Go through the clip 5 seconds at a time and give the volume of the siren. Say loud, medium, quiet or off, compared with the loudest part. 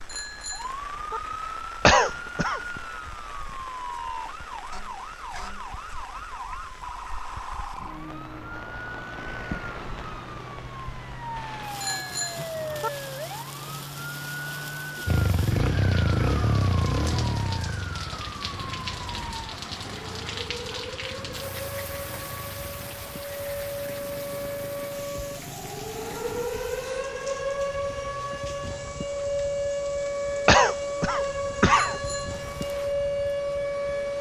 medium, medium, medium, medium, medium, loud, loud.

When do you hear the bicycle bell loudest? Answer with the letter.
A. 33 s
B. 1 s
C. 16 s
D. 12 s
D.